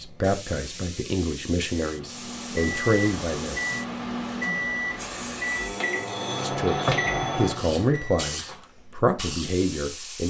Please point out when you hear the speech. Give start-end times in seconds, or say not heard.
0.0-3.6, 6.4-10.2.